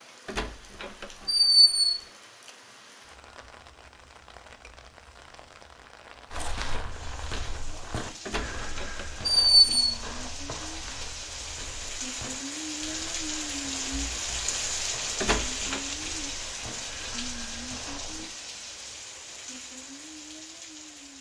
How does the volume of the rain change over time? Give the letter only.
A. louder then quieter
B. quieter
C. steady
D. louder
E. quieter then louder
A.